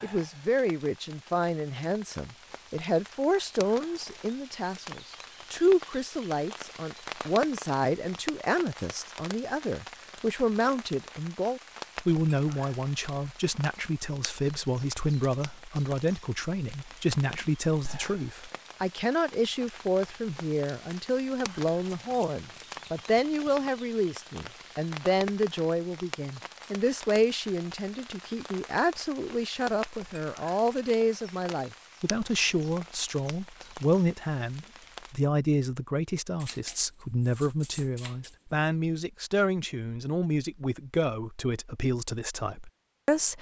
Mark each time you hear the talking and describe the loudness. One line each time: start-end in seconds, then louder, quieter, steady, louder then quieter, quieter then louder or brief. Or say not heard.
0.0-43.3 steady.